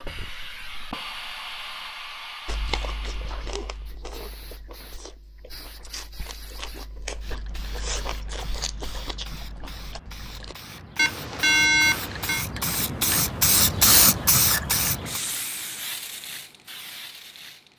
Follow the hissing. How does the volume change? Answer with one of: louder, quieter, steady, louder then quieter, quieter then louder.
quieter then louder.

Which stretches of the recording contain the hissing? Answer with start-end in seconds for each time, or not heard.
0.0-17.7.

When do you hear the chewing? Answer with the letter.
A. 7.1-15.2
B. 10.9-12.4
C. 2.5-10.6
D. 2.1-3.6
C.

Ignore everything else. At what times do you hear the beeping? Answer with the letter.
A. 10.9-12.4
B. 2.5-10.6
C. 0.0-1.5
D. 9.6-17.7
A.